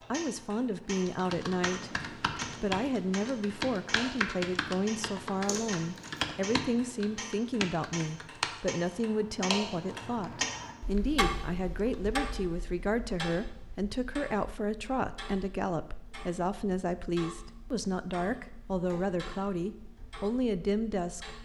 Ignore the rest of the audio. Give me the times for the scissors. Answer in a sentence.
You can hear the scissors from 5.5 to 6.2 s.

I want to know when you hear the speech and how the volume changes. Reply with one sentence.
You can hear the speech from 0.1 to 21.4 s, at a steady volume.